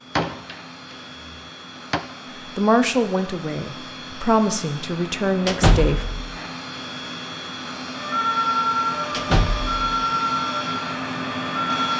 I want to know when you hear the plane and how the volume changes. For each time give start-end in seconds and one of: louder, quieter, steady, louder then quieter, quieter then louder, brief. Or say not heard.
0.0-11.9 louder.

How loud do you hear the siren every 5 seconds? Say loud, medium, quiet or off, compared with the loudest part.
off, loud, loud.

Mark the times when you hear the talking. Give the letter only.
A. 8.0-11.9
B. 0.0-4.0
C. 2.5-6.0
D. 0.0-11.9
C.